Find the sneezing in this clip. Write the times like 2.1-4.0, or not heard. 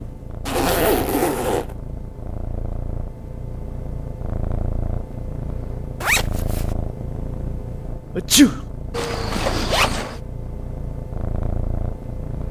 8.2-8.6.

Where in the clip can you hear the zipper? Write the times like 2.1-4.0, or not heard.
0.5-1.8, 6.0-6.7, 8.9-10.2.